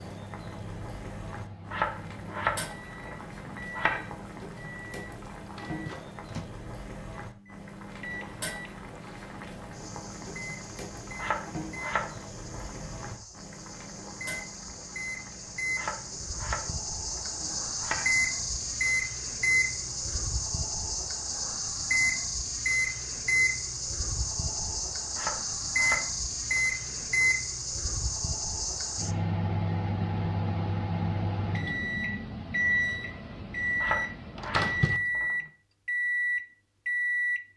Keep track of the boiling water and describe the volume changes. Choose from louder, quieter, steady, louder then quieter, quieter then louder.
quieter.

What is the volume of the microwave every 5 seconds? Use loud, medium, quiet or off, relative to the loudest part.
quiet, quiet, quiet, loud, loud, loud, loud, loud.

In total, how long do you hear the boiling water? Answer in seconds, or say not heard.
20 s.